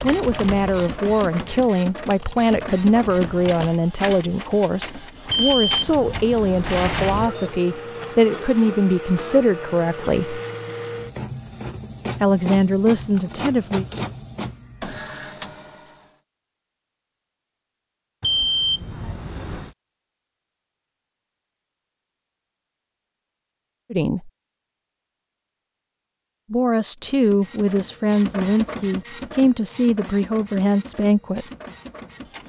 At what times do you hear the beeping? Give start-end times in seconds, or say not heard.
5.2-7.3, 18.2-19.7.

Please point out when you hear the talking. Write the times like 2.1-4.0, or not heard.
0.0-10.4, 12.2-13.8, 23.9-24.3, 26.5-31.4.